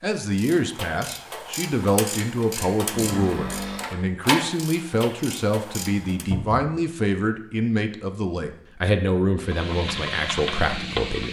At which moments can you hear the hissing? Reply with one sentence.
The hissing can be heard from 9.3 to 11.2 s.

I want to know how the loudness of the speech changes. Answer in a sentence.
The volume of the speech stays about the same.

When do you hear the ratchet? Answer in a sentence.
The ratchet can be heard from 0.3 to 6.2 s.